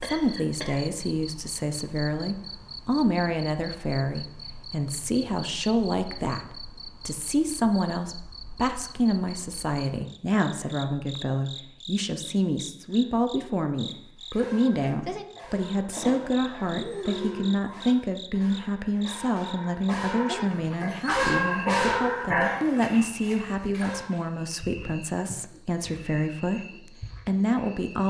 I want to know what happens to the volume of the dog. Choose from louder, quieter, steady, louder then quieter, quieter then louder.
louder.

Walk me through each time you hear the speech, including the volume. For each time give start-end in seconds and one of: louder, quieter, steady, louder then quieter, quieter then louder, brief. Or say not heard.
0.0-28.0 steady.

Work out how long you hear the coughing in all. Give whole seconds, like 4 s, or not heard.
2 s.